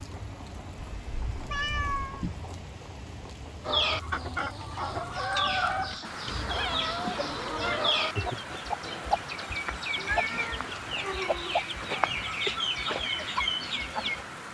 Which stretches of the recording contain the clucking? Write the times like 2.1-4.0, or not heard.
3.6-14.2.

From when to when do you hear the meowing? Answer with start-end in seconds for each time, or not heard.
0.8-2.4, 6.5-7.9, 9.9-11.7.